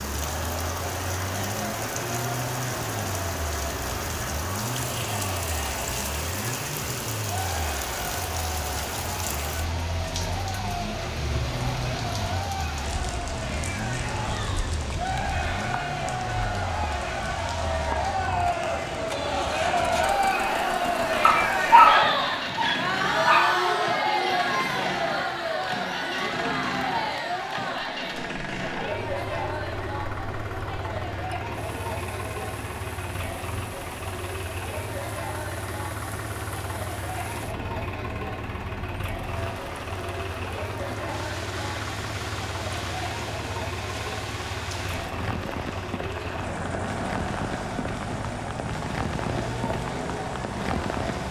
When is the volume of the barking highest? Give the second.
22 s.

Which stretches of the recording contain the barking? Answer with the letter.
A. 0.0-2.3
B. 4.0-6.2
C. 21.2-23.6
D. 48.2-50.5
C.